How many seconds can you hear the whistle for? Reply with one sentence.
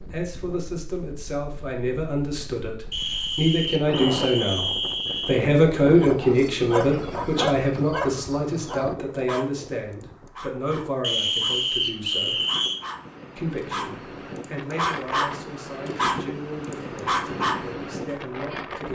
You can hear the whistle for 4 seconds altogether.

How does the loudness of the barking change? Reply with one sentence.
The volume of the barking goes down, then up.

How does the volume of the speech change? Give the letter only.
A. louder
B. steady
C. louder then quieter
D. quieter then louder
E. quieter
C.